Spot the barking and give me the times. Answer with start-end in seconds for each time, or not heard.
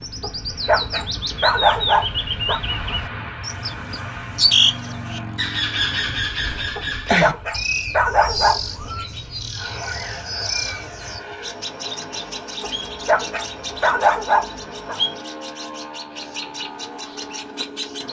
0.2-2.6, 6.8-8.6, 12.6-14.9.